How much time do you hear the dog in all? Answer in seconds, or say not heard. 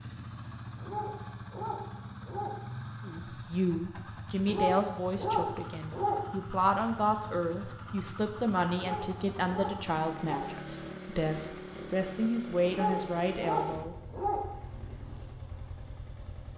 7 s.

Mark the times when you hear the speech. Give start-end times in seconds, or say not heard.
3.0-13.9.